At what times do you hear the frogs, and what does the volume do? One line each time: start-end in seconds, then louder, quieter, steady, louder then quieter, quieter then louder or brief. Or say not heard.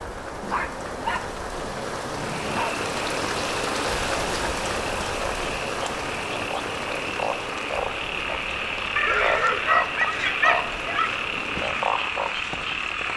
2.2-13.1 louder.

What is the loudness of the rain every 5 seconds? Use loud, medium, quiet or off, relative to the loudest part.
loud, loud, medium.